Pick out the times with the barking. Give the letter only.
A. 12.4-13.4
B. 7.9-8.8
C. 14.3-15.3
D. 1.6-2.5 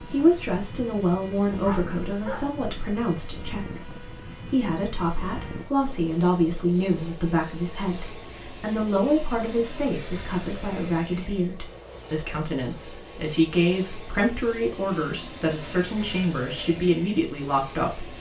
D.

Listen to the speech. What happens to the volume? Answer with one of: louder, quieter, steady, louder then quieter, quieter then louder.
steady.